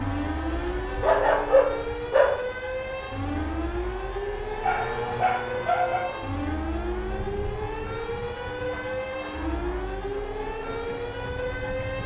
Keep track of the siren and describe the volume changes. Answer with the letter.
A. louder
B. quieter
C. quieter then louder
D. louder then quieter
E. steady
E.